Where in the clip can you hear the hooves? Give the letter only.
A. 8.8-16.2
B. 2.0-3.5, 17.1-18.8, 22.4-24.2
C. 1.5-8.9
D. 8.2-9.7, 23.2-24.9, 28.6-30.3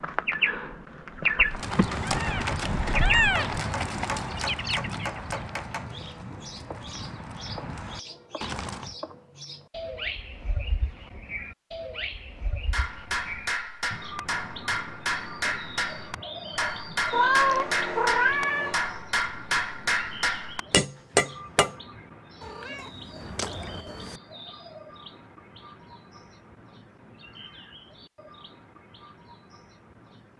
C.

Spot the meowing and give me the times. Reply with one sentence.
You can hear the meowing from 2.0 to 3.5 s, from 17.1 to 18.8 s and from 22.4 to 24.2 s.